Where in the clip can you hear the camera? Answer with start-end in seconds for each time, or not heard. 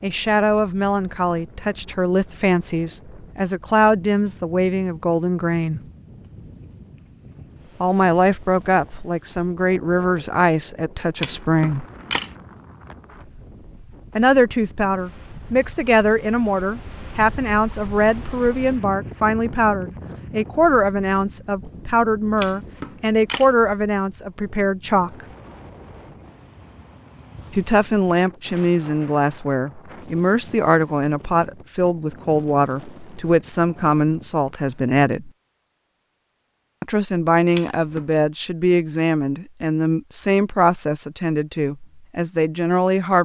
11.2-12.3, 22.4-23.6, 37.5-38.0.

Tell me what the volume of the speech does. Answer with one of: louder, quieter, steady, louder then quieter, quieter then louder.
steady.